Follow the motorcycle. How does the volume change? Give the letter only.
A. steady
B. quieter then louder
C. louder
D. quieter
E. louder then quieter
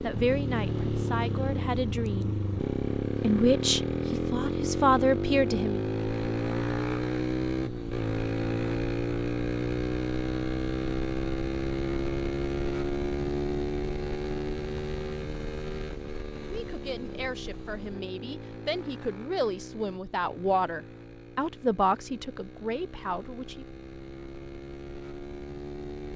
D.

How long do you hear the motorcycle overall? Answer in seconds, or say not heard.
26 s.